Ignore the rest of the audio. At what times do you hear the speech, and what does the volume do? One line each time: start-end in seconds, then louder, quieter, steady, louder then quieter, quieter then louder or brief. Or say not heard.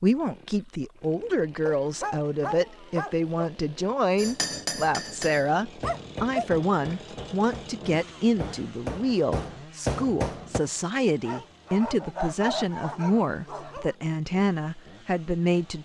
0.0-15.7 steady.